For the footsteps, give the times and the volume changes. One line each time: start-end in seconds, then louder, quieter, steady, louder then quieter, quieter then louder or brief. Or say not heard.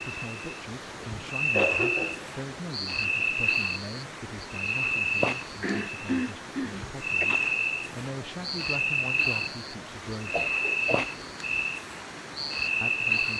not heard.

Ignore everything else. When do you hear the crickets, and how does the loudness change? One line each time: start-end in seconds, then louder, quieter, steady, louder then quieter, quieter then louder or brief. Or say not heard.
0.0-13.3 steady.